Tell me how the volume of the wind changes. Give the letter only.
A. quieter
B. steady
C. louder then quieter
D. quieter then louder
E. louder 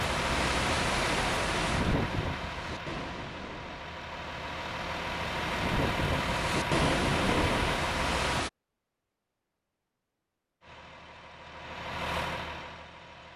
D.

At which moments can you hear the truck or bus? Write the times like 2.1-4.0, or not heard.
0.0-8.4, 10.6-13.3.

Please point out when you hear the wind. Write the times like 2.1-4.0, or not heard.
0.0-8.5.